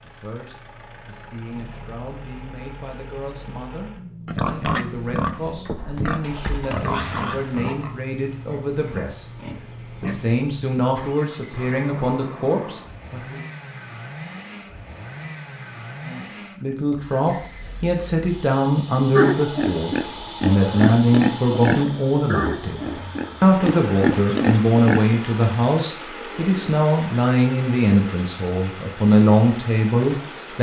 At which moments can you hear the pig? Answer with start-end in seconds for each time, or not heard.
4.2-10.3, 19.1-25.2.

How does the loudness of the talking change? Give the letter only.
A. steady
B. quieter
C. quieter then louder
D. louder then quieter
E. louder
E.